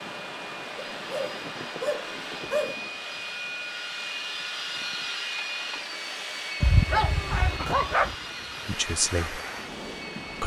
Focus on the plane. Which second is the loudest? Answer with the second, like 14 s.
5 s.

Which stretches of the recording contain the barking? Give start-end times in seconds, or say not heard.
0.9-2.8, 6.6-8.2.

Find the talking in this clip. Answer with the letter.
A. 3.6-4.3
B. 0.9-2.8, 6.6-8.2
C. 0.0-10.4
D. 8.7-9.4
D.